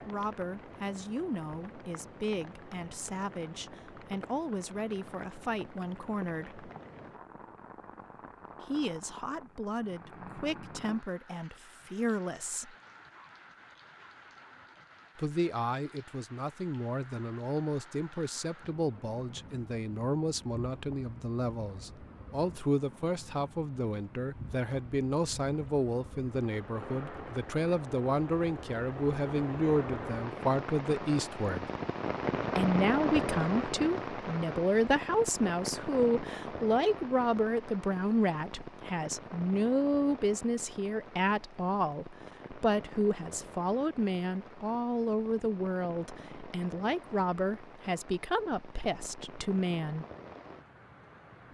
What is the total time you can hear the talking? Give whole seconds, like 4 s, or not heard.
45 s.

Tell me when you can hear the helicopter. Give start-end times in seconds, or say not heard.
not heard.